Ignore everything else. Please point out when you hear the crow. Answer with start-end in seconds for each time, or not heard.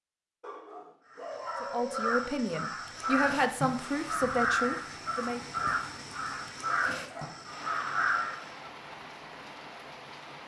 1.1-8.7.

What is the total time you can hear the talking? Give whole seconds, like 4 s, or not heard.
4 s.